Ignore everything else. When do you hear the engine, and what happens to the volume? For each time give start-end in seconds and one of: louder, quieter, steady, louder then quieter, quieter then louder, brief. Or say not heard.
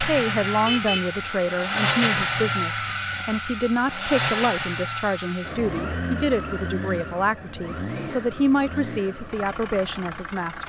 0.0-10.6 quieter.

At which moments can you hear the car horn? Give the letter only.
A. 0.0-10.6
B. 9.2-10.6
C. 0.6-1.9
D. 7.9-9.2
C.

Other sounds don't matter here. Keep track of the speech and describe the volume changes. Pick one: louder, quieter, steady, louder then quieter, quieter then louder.
steady.